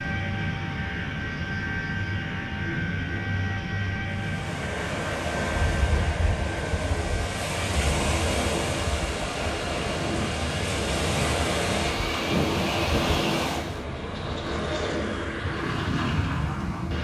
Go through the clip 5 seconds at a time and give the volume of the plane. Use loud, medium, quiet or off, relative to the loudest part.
loud, medium, loud, loud.